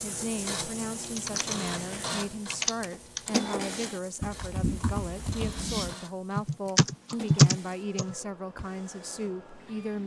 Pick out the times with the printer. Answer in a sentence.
You can hear the printer from 0.0 to 10.0 s.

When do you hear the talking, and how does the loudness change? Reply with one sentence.
You can hear the talking from 0.0 to 10.0 s, at a steady volume.